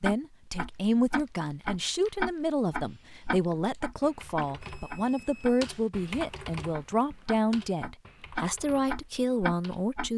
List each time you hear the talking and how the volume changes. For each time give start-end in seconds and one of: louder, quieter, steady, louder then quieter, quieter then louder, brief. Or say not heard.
0.0-10.1 steady.